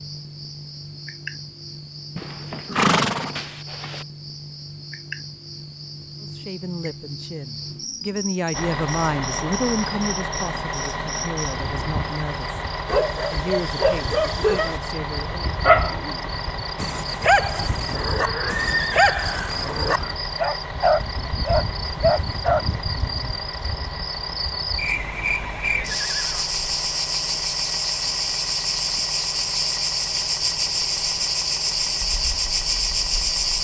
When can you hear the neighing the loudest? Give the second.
3 s.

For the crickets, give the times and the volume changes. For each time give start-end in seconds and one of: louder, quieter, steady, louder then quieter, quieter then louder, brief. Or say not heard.
0.0-33.5 louder.